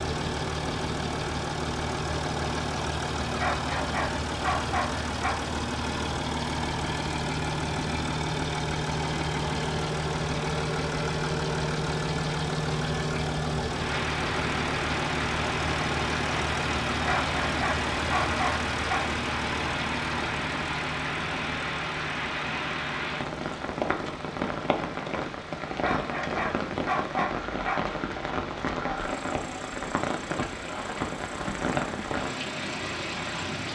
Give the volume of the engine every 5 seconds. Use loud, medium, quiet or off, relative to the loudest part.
loud, loud, loud, loud, medium, quiet, quiet.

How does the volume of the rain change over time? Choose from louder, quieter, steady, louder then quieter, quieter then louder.
steady.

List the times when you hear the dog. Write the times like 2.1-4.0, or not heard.
3.4-5.4, 17.1-19.1, 25.8-27.8.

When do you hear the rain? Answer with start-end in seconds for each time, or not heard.
13.7-33.7.